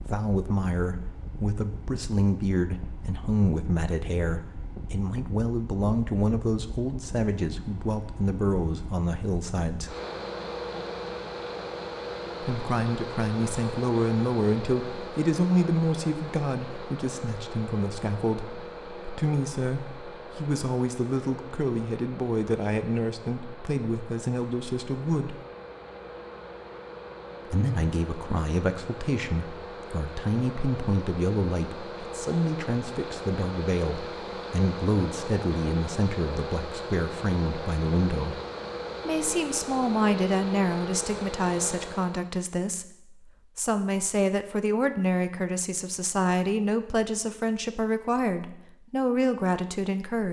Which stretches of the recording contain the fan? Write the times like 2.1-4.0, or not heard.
0.0-42.3.